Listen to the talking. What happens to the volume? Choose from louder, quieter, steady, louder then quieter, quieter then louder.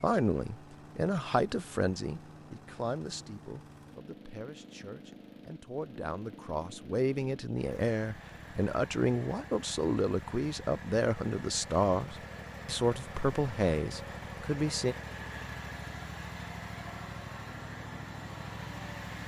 quieter then louder.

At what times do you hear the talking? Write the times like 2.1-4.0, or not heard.
0.0-14.9.